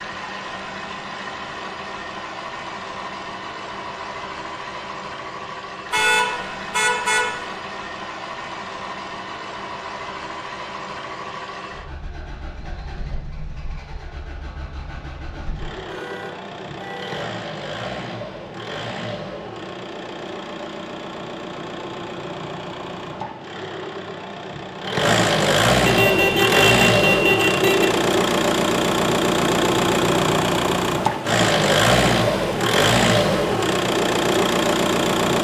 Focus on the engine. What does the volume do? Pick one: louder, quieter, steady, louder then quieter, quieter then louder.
louder.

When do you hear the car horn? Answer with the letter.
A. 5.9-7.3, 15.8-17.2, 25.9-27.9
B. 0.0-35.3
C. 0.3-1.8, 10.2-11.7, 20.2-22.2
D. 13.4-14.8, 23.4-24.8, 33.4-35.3
A.